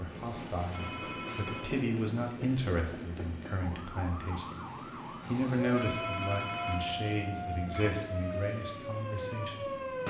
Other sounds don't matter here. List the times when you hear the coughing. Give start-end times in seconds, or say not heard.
not heard.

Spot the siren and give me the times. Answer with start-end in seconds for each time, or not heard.
3.5-10.0.